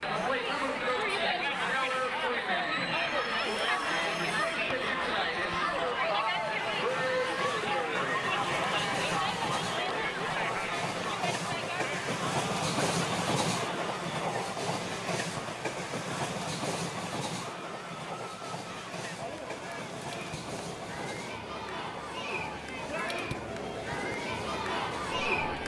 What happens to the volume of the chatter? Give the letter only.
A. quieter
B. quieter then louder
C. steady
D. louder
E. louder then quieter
B.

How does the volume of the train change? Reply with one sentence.
The loudness of the train goes up, then down.